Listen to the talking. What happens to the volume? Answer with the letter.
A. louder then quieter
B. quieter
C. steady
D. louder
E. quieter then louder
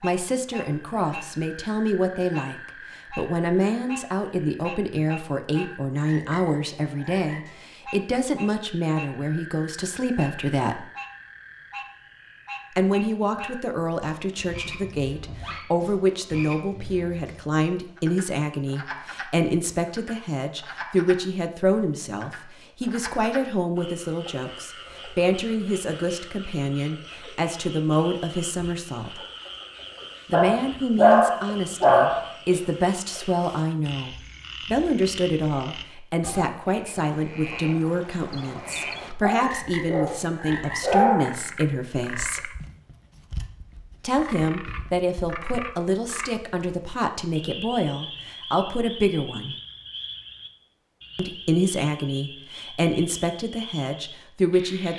C.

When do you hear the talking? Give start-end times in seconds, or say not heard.
0.0-10.8, 12.7-29.2, 30.2-42.5, 44.0-49.5, 51.1-54.9.